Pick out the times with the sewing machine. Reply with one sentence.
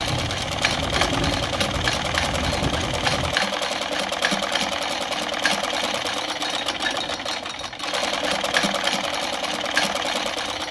You can hear the sewing machine from 0.0 to 10.6 s.